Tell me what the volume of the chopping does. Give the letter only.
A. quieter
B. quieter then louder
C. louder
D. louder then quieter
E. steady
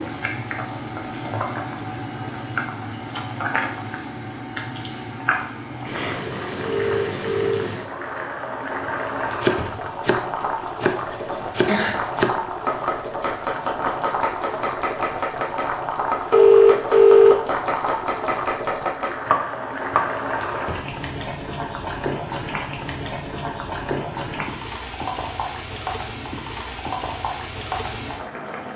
E.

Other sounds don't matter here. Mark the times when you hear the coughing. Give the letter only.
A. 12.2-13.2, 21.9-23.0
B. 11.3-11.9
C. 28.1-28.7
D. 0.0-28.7
B.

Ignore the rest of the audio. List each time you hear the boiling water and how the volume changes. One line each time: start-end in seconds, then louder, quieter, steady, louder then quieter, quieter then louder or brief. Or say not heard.
0.0-28.7 steady.